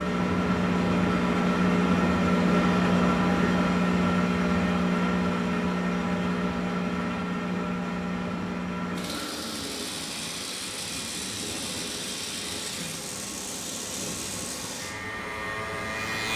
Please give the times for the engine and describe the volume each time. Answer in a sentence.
The engine can be heard from 0.0 to 16.3 s, getting quieter.